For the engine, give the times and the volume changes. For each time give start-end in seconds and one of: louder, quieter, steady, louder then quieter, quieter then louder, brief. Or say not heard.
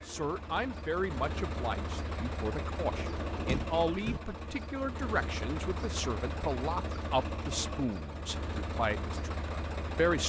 0.0-10.2 steady.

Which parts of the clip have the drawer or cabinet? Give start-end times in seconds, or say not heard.
2.9-4.2.